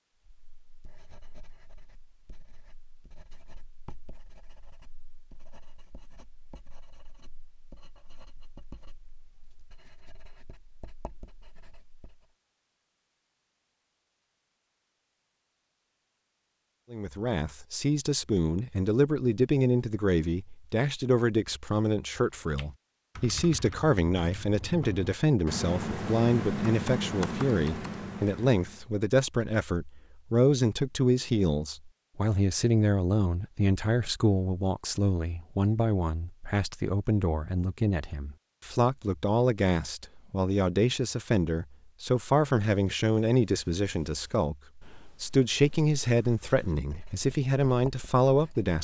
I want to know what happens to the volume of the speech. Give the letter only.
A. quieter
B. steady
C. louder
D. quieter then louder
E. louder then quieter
B.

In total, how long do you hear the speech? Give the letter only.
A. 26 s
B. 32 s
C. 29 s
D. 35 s
B.